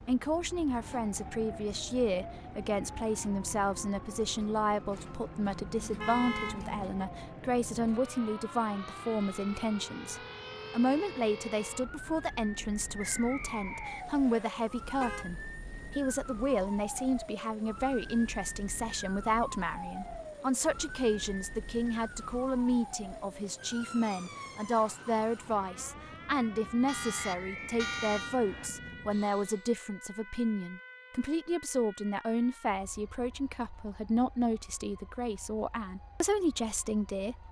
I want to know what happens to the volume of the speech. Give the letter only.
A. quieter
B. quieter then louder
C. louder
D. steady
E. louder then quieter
D.